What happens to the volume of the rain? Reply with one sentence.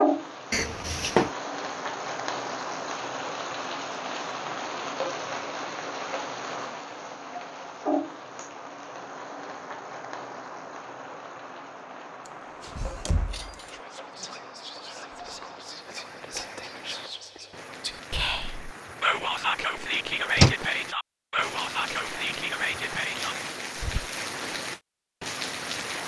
The loudness of the rain goes down, then up.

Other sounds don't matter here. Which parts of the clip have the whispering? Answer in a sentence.
You can hear the whispering from 13.6 to 24.1 s.